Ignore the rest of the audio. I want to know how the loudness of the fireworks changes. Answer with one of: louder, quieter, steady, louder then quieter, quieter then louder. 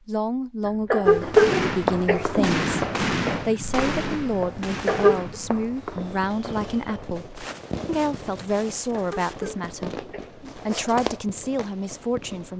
quieter.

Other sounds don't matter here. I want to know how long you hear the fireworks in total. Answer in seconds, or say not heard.
11 s.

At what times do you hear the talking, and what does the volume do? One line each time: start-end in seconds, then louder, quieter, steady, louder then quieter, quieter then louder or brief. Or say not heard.
0.1-12.5 steady.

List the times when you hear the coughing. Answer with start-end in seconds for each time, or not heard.
0.7-2.5, 4.8-5.2, 8.9-10.6.